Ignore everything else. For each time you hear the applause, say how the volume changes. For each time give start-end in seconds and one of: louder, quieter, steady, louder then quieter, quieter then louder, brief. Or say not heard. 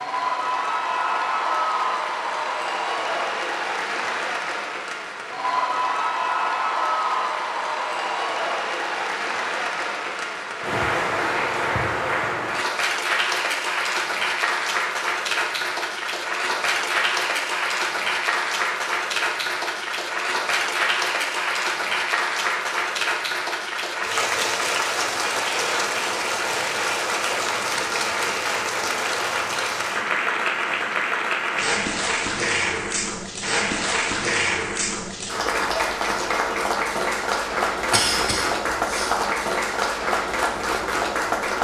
0.0-41.5 steady.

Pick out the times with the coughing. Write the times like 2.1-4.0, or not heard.
37.9-39.2.